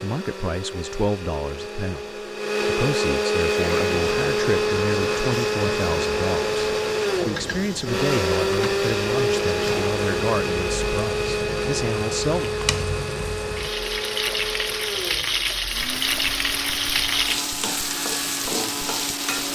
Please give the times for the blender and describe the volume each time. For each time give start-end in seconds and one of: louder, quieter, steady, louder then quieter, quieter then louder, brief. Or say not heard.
0.0-19.4 quieter.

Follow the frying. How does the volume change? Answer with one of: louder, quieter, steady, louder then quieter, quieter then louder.
louder.